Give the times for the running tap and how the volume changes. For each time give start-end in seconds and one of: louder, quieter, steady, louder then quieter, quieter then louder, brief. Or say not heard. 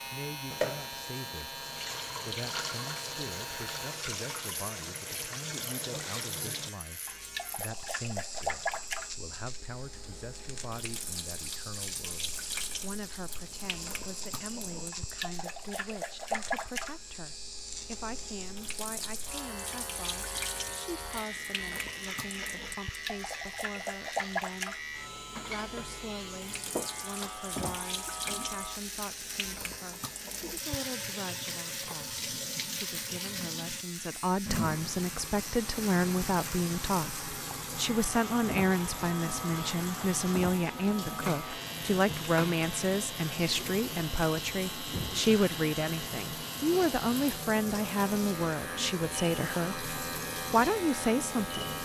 0.5-51.8 steady.